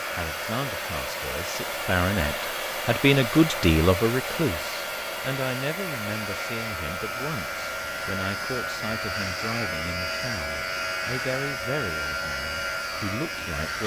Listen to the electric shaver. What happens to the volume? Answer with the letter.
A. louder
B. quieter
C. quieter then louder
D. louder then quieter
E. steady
A.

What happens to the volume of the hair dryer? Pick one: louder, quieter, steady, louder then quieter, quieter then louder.
quieter.